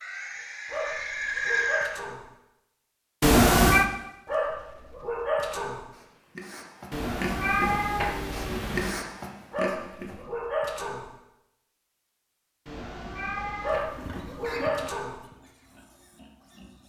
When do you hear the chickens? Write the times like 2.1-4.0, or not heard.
not heard.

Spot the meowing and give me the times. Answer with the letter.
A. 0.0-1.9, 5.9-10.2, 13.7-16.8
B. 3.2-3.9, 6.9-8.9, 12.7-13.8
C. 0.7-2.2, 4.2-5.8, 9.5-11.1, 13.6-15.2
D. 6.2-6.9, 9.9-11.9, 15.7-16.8
B.